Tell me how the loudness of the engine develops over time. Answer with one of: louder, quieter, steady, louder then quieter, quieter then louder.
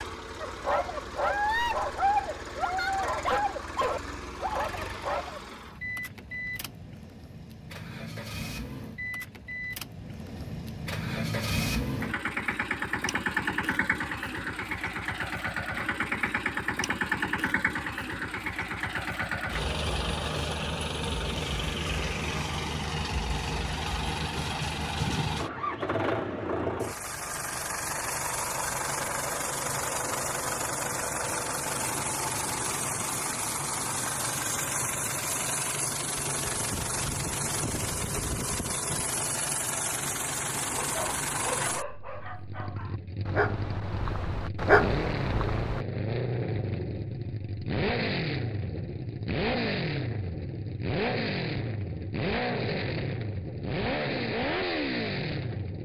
louder.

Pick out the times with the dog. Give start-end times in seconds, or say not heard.
0.4-5.4, 40.8-45.9.